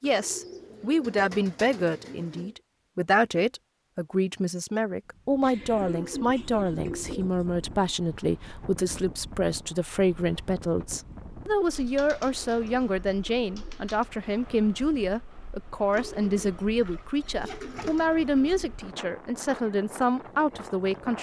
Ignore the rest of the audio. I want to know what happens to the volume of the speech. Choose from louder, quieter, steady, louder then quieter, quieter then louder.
steady.